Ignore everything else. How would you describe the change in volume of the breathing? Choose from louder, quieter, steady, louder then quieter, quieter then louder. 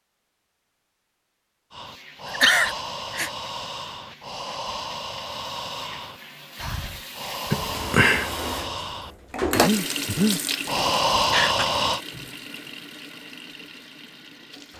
louder.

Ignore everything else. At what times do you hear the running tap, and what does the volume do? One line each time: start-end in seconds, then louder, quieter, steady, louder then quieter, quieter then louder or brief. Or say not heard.
1.8-14.7 louder then quieter.